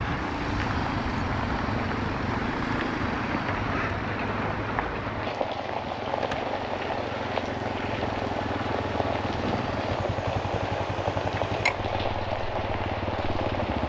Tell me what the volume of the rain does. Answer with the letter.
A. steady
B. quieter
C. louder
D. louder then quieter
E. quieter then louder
A.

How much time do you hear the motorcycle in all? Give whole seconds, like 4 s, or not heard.
14 s.